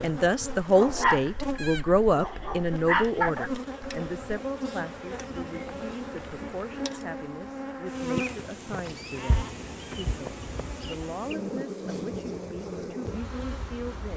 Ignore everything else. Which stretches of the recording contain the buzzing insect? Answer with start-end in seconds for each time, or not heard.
0.0-14.1.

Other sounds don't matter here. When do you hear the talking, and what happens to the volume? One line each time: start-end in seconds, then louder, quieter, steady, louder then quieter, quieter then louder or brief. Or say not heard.
0.0-14.1 quieter.